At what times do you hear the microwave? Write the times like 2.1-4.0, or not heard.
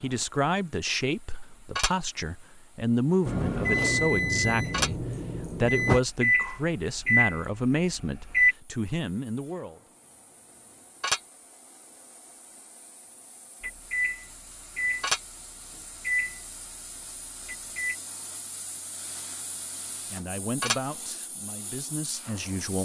3.2-8.6, 13.6-17.9.